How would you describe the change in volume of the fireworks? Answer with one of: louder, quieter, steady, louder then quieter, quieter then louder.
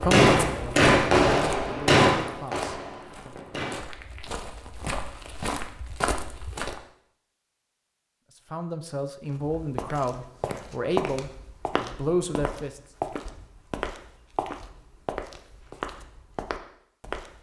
quieter.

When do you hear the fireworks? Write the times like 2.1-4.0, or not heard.
0.0-4.0.